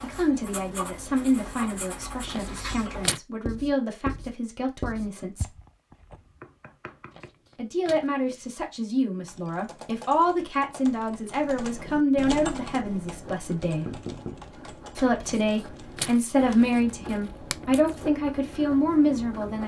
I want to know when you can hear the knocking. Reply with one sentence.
You can hear the knocking from 5.2 to 7.3 s and from 13.8 to 14.4 s.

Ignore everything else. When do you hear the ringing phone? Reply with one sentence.
You can't hear the ringing phone here.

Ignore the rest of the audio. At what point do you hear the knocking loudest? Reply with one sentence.
The loudest moment of the knocking is at 14 seconds.